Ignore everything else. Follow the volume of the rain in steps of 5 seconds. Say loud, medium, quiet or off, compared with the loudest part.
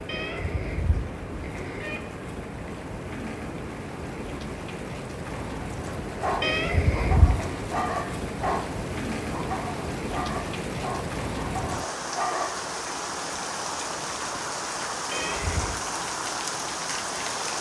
medium, loud, loud, loud.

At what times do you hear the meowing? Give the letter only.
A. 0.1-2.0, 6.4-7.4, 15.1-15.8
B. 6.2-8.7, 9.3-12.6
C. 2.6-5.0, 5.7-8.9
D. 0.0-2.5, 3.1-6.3
A.